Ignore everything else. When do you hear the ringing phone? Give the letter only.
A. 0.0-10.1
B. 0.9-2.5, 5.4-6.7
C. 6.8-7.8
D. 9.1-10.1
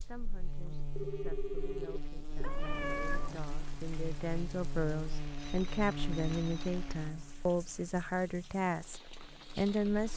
B.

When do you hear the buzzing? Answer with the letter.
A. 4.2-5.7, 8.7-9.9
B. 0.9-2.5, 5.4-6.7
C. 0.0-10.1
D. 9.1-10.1
C.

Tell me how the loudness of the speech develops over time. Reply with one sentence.
The loudness of the speech goes up.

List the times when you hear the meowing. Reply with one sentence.
The meowing can be heard from 2.4 to 3.4 s.